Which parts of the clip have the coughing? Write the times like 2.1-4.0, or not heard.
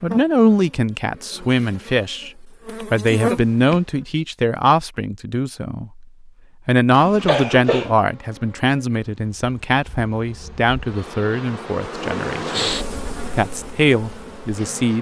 6.9-8.0.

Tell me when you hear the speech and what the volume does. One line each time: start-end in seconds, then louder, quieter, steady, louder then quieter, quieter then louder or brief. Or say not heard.
0.0-6.0 steady
6.7-12.7 quieter
13.3-14.9 brief.